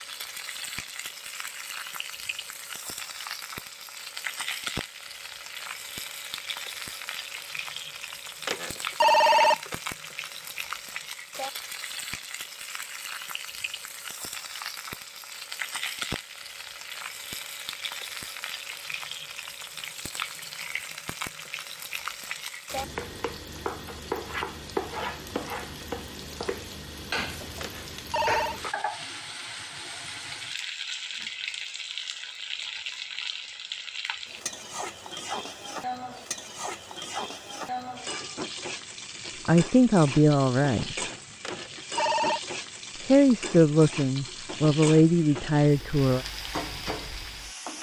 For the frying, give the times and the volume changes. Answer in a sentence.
You can hear the frying from 0.0 to 47.7 s, at a steady volume.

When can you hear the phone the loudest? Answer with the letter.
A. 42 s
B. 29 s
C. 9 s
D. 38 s
C.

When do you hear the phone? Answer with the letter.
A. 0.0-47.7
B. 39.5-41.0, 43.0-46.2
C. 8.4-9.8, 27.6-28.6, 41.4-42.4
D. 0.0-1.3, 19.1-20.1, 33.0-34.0
C.